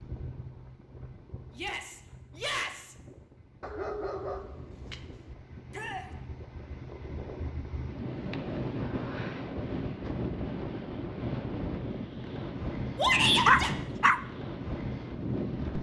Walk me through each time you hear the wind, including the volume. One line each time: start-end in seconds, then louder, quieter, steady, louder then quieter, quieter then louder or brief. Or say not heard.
0.0-15.7 louder.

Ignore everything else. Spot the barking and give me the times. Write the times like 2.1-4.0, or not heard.
3.6-5.3, 13.4-14.2.